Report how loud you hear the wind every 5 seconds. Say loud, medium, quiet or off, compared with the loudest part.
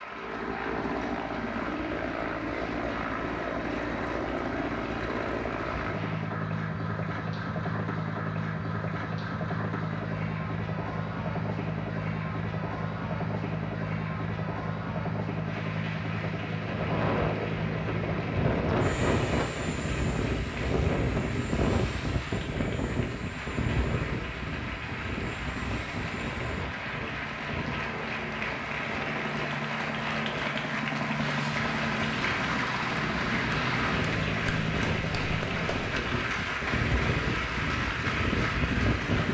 off, off, off, loud, loud, medium, medium, loud.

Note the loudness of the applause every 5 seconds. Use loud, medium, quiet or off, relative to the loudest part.
medium, medium, medium, medium, medium, loud, loud, loud.